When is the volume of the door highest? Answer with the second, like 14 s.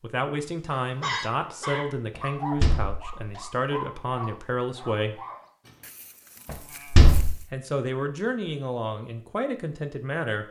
7 s.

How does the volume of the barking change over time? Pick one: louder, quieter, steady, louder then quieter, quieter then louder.
quieter.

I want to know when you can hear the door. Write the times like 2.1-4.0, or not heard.
2.1-3.4, 6.5-7.3.